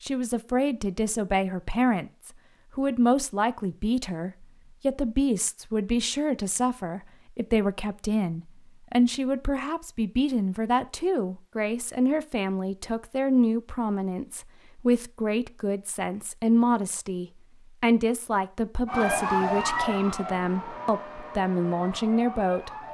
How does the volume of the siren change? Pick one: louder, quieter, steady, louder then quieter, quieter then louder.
quieter.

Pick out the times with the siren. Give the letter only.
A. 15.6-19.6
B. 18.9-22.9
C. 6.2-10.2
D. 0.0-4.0
B.